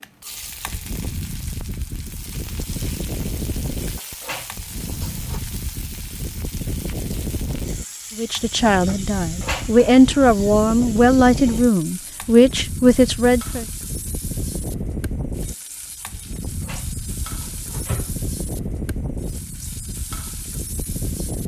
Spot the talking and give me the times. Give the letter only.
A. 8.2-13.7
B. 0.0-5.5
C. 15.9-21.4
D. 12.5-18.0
A.